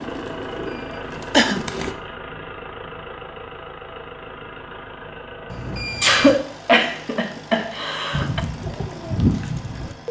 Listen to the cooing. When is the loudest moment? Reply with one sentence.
The volume of the cooing peaks at 9 seconds.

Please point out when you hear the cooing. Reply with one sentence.
The cooing can be heard from 0.0 to 1.9 s and from 8.1 to 10.0 s.